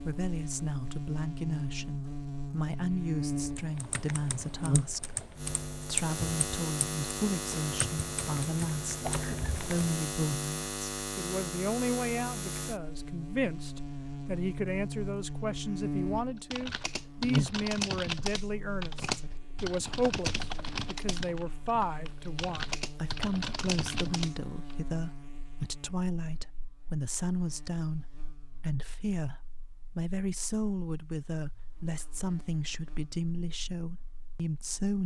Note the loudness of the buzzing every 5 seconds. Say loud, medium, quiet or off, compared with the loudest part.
loud, loud, loud, loud, medium, quiet, quiet.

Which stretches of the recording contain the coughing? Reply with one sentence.
You can hear the coughing from 9.0 to 9.6 s.